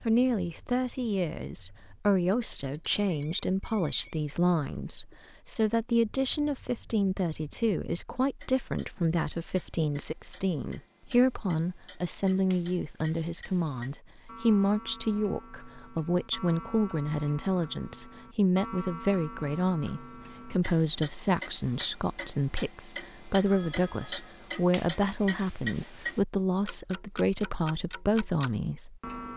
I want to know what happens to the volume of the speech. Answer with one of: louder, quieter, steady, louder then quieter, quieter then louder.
steady.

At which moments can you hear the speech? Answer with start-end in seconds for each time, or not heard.
0.1-29.3.